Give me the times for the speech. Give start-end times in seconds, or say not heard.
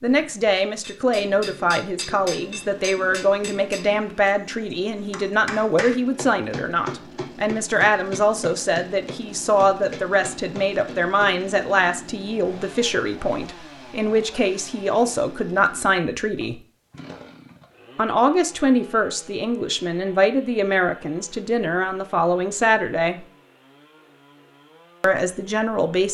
0.0-16.6, 17.9-23.2, 25.0-26.0.